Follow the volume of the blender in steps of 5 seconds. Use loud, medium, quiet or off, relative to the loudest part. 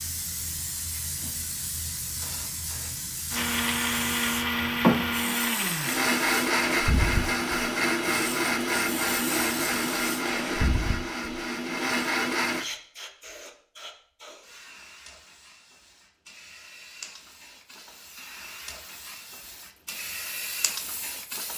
loud, loud, loud, off, off.